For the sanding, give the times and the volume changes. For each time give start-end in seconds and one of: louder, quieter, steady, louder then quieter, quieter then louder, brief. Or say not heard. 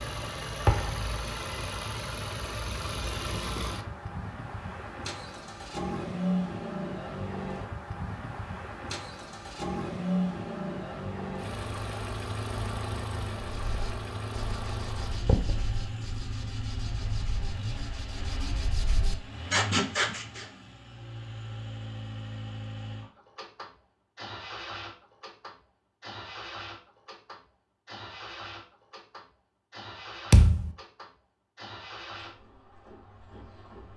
13.5-20.4 louder.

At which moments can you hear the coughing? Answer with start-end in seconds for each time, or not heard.
not heard.